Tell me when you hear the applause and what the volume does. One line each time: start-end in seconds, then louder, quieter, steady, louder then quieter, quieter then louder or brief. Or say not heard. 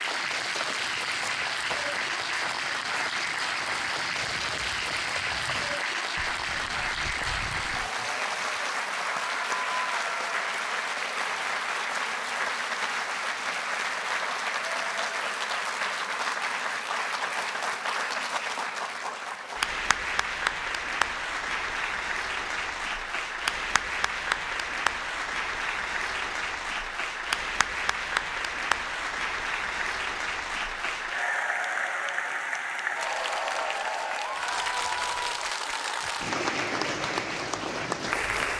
0.0-38.5 steady.